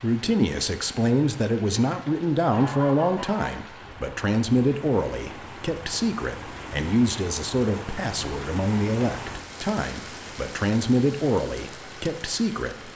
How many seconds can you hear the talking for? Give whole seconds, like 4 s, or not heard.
13 s.